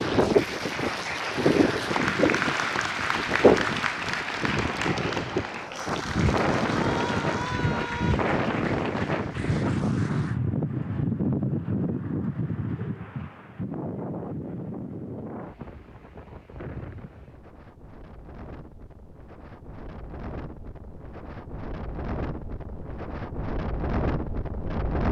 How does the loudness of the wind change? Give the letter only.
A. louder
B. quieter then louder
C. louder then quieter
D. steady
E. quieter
B.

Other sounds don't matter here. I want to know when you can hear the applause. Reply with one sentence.
The applause can be heard from 0.0 to 10.4 s.